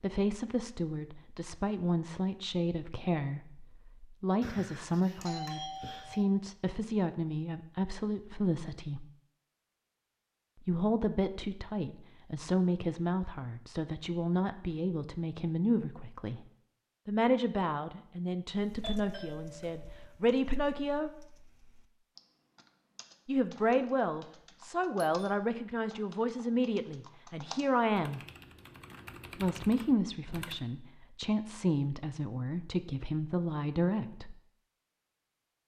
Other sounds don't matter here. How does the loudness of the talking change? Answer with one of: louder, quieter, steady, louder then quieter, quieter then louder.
steady.